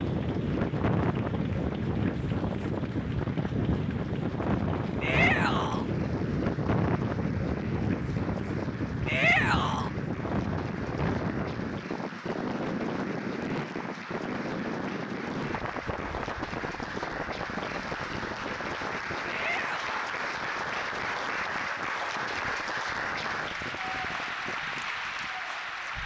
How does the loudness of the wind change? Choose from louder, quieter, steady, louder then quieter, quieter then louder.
quieter.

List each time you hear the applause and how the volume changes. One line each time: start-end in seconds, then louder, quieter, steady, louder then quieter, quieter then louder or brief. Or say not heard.
0.0-26.0 louder.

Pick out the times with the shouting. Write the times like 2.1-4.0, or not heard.
5.0-5.8, 9.1-9.9, 19.2-19.9.